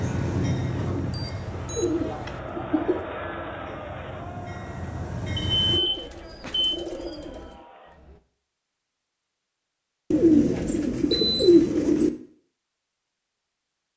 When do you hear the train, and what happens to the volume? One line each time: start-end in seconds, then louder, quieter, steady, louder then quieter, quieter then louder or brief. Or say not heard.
0.0-5.8 quieter then louder.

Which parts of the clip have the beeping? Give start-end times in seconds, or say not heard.
1.1-2.4, 5.6-6.8, 11.1-11.8.